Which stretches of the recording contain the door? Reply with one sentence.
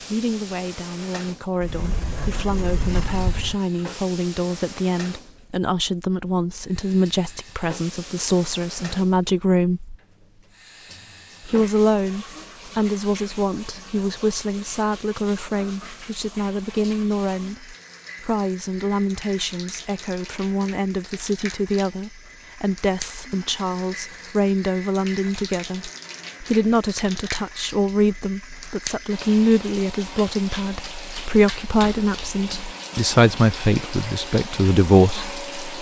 You can hear the door from 1.6 to 3.5 s.